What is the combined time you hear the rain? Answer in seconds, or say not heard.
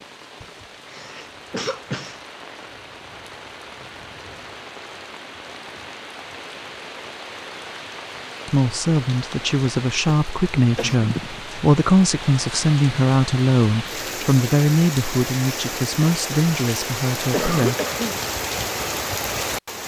20 s.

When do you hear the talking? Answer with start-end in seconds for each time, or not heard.
8.4-17.8.